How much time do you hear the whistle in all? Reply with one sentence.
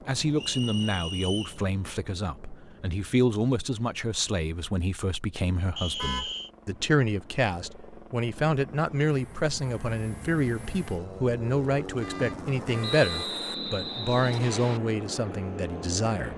The whistle can be heard for 4 seconds in total.